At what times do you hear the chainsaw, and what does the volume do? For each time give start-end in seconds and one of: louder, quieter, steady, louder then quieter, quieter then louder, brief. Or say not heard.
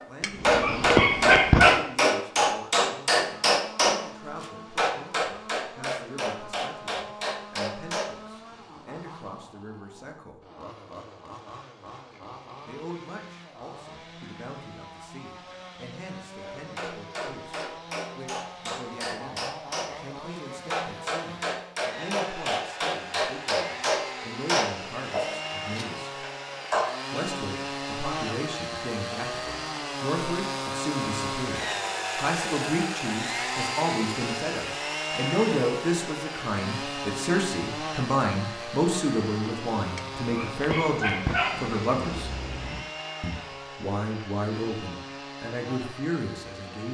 3.2-46.9 louder then quieter.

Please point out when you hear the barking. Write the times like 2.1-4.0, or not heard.
0.2-1.8, 40.0-42.9.